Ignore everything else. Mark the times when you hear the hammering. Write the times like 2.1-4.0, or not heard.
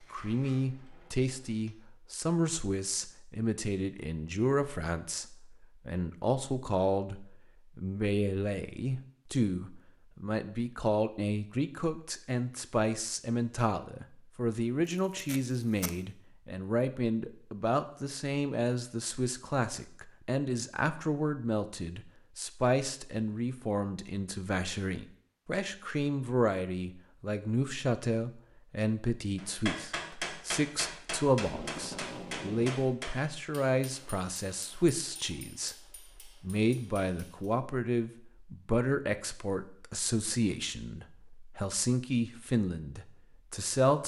29.4-37.5.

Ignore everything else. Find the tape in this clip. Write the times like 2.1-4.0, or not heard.
15.2-15.9, 31.4-32.8.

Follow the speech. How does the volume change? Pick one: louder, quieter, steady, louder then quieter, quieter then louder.
steady.